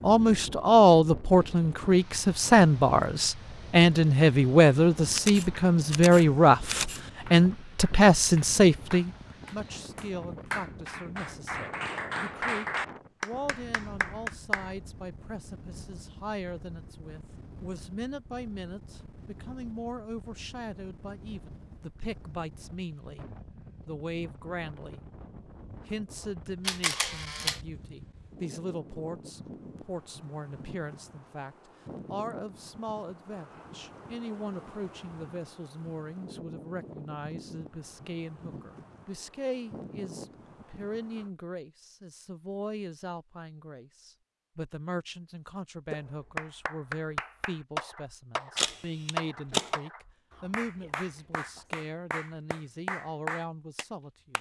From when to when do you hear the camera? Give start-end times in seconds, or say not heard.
5.1-7.0, 26.6-27.6, 48.5-49.8.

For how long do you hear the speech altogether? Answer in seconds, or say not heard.
53 s.